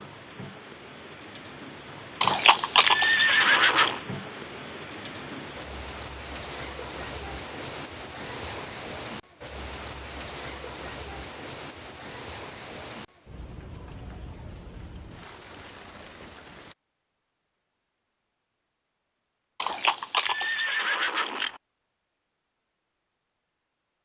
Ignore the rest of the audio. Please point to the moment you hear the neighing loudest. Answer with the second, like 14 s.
3 s.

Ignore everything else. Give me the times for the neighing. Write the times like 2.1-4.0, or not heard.
2.2-4.0, 19.6-21.6.